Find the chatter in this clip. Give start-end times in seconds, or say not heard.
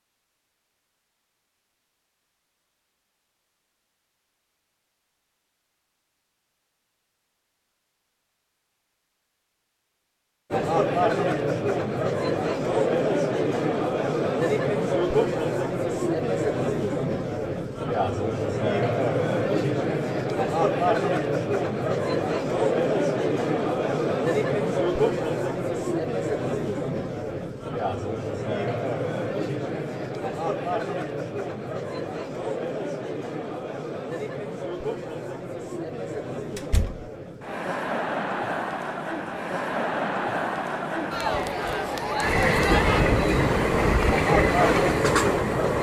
10.5-45.7.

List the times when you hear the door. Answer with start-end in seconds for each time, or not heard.
36.5-37.1.